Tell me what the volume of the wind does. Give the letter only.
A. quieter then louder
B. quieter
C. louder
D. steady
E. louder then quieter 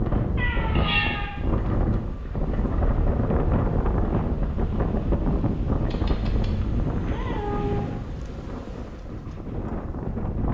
B.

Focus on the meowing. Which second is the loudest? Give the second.
1 s.